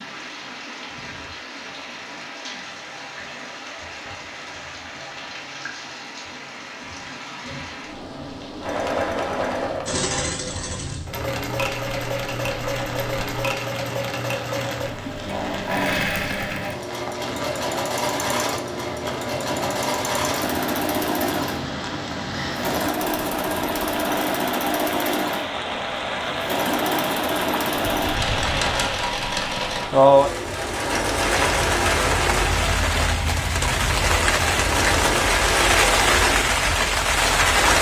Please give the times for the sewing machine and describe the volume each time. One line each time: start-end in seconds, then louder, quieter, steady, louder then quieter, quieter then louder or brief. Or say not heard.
8.6-37.7 steady.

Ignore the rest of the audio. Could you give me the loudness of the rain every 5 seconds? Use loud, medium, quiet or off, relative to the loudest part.
quiet, quiet, quiet, quiet, medium, medium, loud, loud.